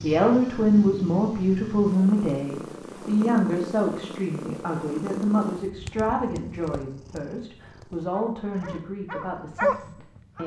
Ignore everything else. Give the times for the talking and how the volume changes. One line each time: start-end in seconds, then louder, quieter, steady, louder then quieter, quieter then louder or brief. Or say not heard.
0.0-10.4 quieter.